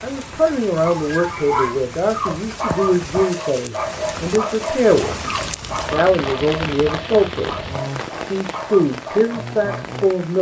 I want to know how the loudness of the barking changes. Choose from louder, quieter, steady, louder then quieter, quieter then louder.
quieter.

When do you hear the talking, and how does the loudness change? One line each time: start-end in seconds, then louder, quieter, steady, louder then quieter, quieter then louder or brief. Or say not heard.
0.0-7.5 steady
8.2-10.3 brief.